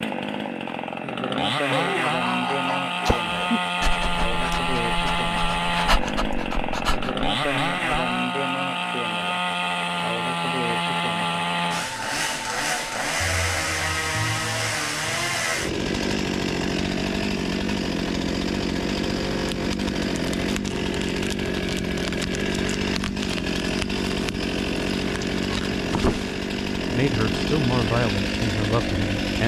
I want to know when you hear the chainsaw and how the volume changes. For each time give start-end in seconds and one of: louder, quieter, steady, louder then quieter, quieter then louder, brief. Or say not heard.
0.0-29.4 steady.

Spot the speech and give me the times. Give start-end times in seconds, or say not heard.
26.8-29.4.